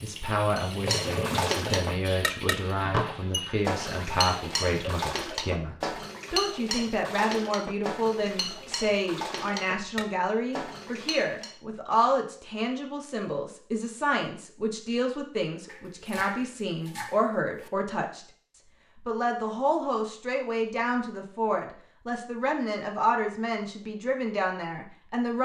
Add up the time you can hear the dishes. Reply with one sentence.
You can hear the dishes for 11 seconds altogether.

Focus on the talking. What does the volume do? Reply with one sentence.
The volume of the talking stays about the same.